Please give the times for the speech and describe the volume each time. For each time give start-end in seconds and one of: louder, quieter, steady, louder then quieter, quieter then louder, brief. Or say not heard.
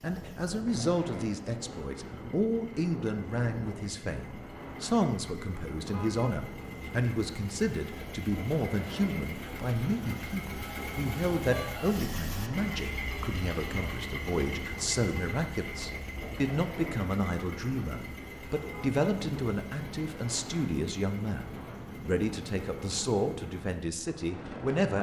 0.0-24.9 steady.